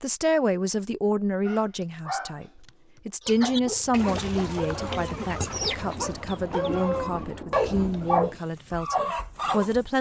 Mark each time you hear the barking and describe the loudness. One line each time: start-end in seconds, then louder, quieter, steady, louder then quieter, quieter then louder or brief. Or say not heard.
1.4-9.7 louder.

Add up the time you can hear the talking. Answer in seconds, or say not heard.
10 s.